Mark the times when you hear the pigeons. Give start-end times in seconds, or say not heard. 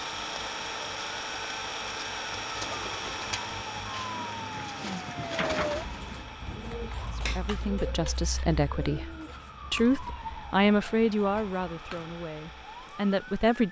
2.5-9.5.